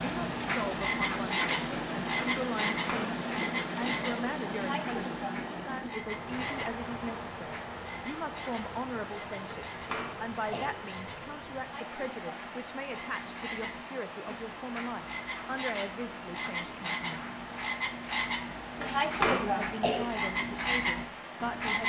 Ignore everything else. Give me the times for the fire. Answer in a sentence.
The fire can't be heard in this clip.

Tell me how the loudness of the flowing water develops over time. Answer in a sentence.
The loudness of the flowing water goes down.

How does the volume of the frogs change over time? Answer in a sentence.
The loudness of the frogs goes down, then up.